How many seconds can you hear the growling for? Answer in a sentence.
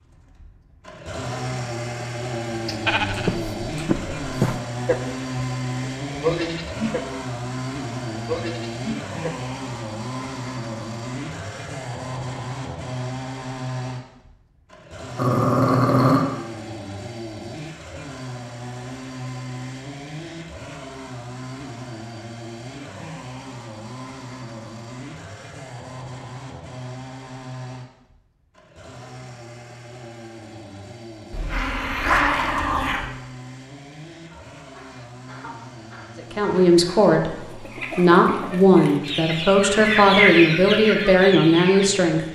The growling can be heard for 3 seconds in total.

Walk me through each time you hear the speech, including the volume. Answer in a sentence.
The speech can be heard from 36.1 to 42.2 s, at a steady volume.